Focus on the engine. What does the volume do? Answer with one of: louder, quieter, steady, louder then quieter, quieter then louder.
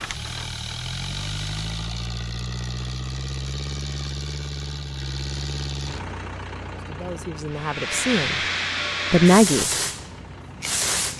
quieter.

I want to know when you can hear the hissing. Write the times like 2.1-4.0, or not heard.
0.0-1.9, 7.5-11.1.